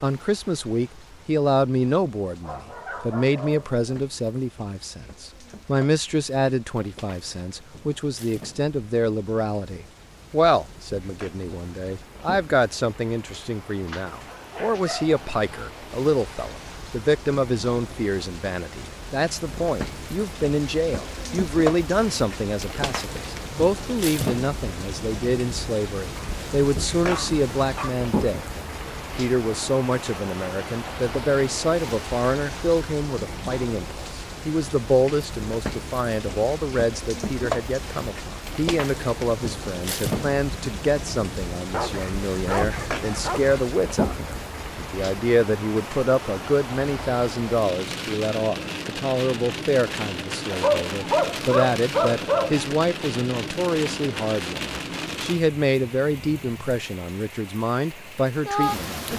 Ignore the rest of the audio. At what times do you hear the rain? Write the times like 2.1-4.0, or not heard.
0.0-59.1.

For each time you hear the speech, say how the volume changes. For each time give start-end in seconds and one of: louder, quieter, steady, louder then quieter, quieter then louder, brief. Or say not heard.
0.0-59.1 steady.